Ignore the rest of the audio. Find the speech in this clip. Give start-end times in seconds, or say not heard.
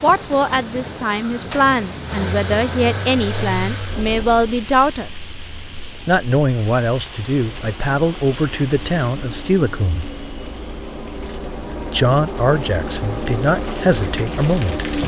0.0-5.1, 6.0-10.1, 11.9-14.8.